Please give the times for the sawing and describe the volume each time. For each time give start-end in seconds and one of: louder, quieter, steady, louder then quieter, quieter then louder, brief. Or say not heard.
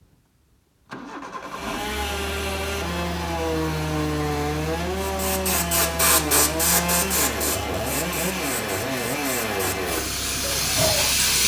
1.4-11.2 steady.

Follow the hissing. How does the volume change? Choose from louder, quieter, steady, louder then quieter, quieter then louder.
quieter then louder.